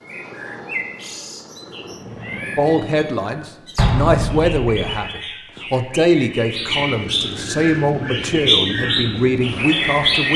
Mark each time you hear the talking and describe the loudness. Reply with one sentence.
The talking can be heard from 2.5 to 10.3 s, at a steady volume.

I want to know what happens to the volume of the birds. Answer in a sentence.
The loudness of the birds goes up.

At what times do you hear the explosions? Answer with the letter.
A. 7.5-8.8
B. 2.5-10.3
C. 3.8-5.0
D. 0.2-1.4
C.